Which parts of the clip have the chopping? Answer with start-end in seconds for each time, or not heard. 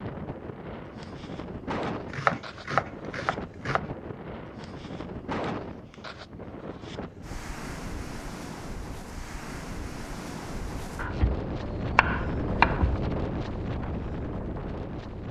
2.1-3.9, 10.9-13.1.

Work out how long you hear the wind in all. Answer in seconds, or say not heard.
15 s.